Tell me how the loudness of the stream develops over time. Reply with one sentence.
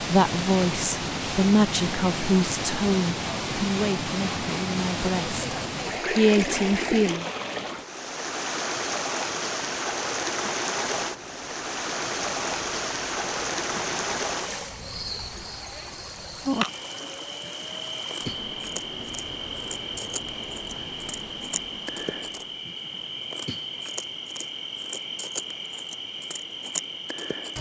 The loudness of the stream goes down.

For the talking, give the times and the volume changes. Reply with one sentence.
The talking can be heard from 0.0 to 7.3 s, getting quieter then louder.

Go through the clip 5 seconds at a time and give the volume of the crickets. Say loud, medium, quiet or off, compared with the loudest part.
off, off, quiet, loud, loud, loud.